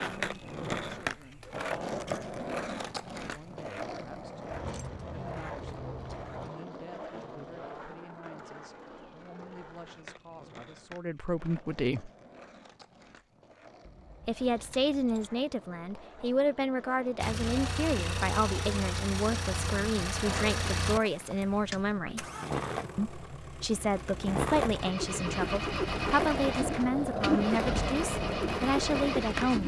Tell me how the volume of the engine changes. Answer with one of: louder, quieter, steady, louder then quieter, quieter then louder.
quieter then louder.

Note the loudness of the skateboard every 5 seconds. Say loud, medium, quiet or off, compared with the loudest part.
loud, medium, quiet, quiet, loud, loud.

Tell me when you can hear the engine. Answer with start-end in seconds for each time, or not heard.
17.2-29.6.